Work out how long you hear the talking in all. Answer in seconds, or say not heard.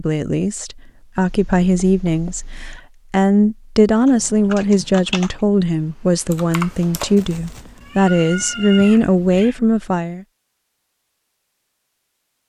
10 s.